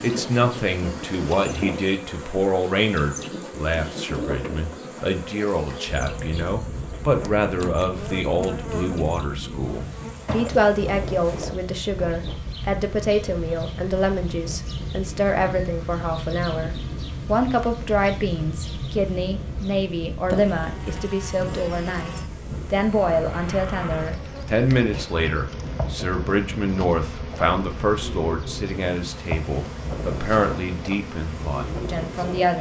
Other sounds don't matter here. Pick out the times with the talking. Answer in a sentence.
You can hear the talking from 0.0 to 32.5 s.